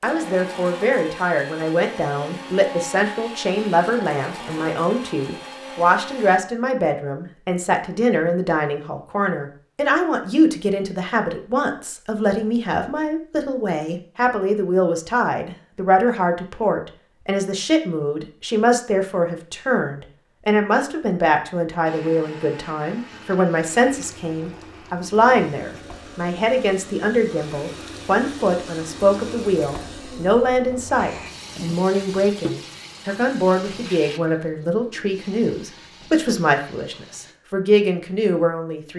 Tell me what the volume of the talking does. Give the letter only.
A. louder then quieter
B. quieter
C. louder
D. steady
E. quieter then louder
D.